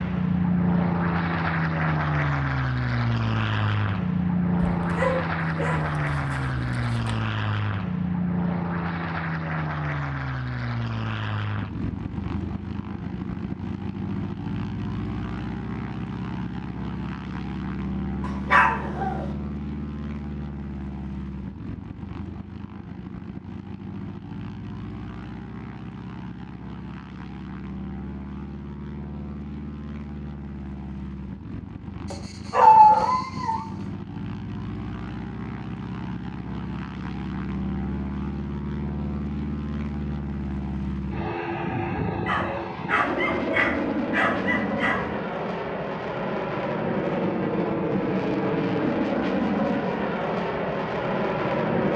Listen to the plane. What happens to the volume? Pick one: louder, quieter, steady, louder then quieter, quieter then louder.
quieter then louder.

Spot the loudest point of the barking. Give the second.
33 s.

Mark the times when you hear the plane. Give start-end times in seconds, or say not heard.
0.0-51.9.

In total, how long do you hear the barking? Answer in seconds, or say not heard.
8 s.